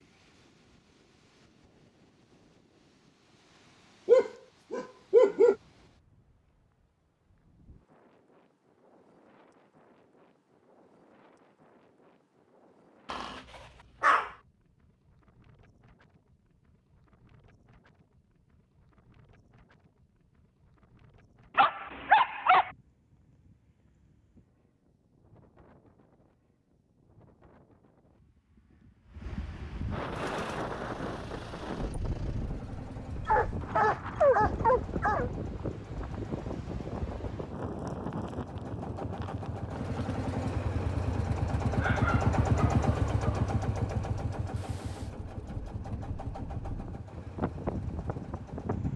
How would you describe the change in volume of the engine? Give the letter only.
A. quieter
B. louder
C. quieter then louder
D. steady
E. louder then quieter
E.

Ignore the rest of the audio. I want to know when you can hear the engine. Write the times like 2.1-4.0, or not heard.
30.1-48.9.